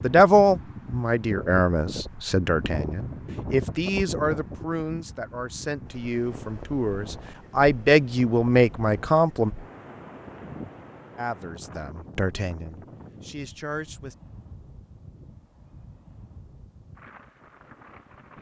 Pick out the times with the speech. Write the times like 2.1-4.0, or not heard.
0.0-9.5, 11.2-14.2.